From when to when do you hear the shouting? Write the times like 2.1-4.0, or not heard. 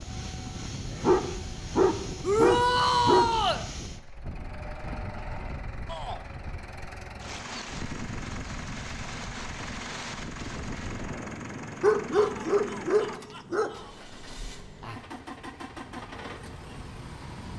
2.2-3.6, 5.8-6.2, 12.1-13.9.